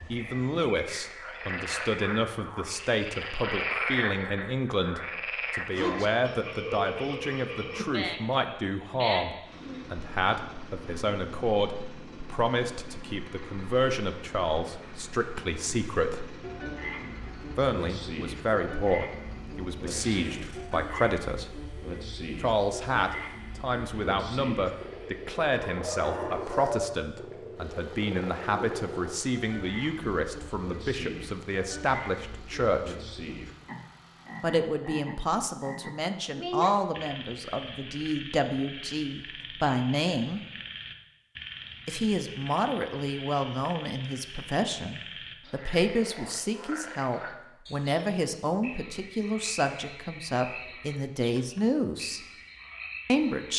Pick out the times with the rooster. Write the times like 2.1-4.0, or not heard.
25.7-27.0.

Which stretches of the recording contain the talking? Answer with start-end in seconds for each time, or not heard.
0.1-16.3, 17.6-21.6, 22.4-33.0, 34.4-40.4, 41.9-52.2, 53.0-53.5.